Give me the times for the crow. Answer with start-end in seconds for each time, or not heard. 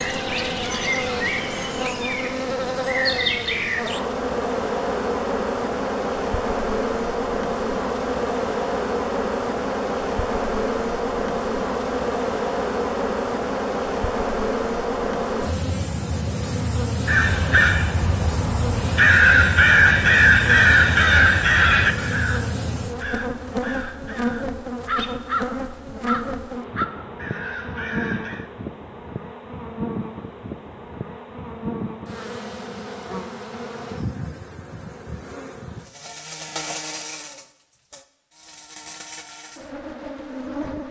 17.1-28.4.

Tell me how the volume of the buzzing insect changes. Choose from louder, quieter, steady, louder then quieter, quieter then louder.
quieter.